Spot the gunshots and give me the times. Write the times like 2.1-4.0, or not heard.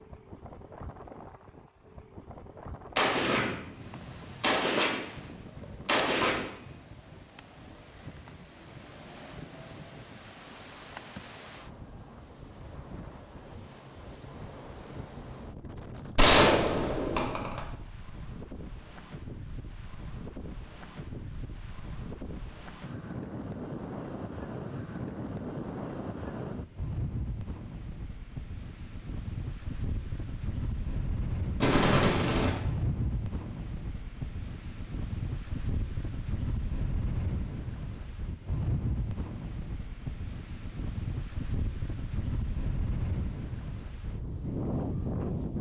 3.0-5.0, 5.8-6.5, 16.1-17.6, 31.6-32.6.